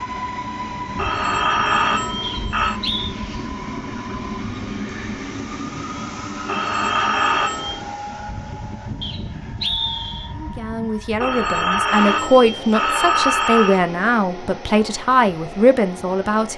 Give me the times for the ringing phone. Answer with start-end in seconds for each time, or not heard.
0.9-2.8, 6.5-7.8, 11.2-13.8.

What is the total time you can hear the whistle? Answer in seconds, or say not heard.
2 s.